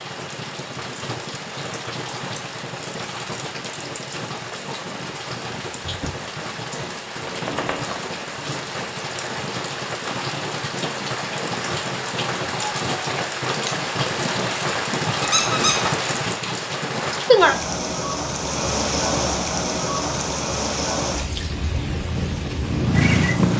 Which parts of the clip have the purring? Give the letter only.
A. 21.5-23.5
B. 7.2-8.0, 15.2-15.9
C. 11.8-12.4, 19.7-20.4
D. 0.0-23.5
A.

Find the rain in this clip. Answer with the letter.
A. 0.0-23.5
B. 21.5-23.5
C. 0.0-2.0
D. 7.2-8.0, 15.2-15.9
A.